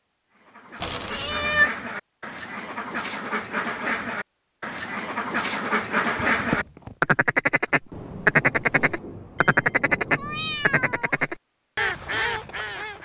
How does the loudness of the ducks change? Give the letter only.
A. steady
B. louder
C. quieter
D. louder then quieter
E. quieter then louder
D.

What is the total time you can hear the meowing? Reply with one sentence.
The meowing can be heard for 3 seconds in total.